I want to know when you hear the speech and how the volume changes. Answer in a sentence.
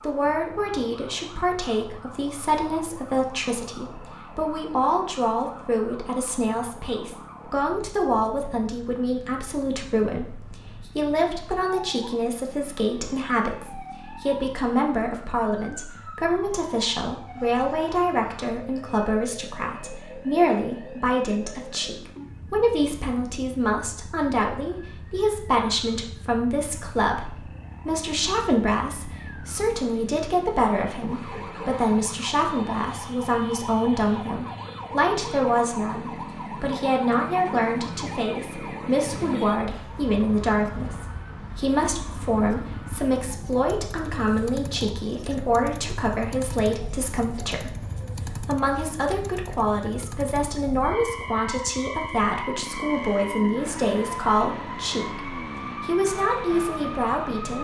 You can hear the speech from 0.0 to 47.8 s, at a steady volume; and from 48.4 to 57.6 s, at a steady volume.